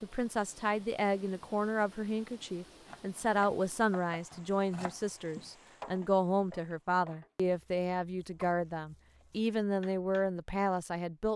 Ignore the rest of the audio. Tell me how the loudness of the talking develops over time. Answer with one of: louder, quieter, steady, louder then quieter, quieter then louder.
steady.